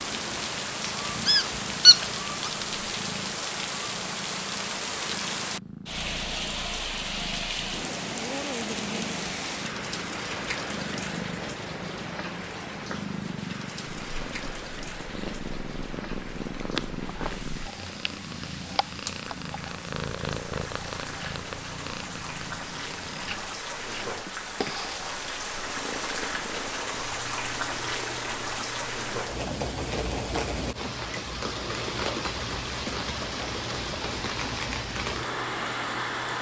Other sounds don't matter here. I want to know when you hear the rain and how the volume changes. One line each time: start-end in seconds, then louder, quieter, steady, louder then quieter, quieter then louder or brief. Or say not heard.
0.0-36.3 quieter then louder.